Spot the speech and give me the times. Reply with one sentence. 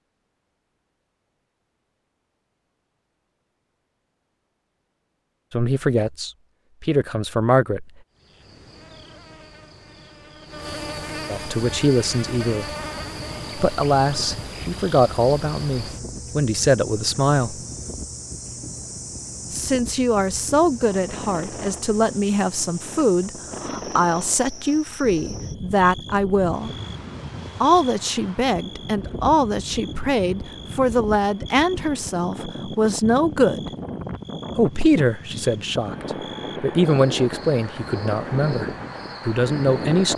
You can hear the speech from 5.5 to 7.9 s, from 11.2 to 12.7 s, from 13.6 to 17.6 s, from 19.5 to 26.7 s, from 27.6 to 33.7 s and from 34.5 to 40.1 s.